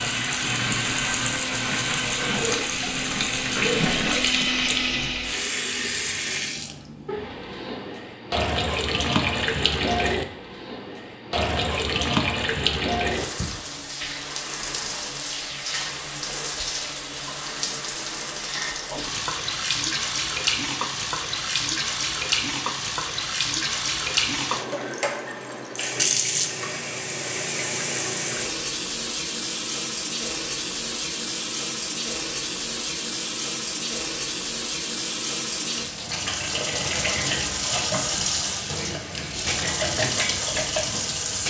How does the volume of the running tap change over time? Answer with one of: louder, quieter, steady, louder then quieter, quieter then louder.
steady.